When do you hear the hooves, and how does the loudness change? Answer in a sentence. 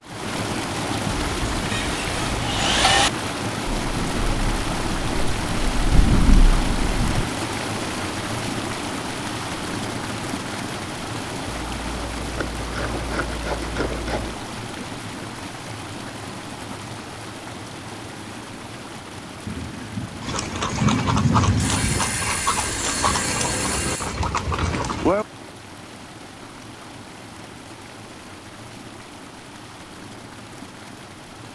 You can hear the hooves from 20.2 to 25.2 s, at a steady volume.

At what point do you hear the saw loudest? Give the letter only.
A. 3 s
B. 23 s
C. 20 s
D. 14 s
A.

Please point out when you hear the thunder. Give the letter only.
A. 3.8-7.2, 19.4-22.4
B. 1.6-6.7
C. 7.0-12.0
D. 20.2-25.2
A.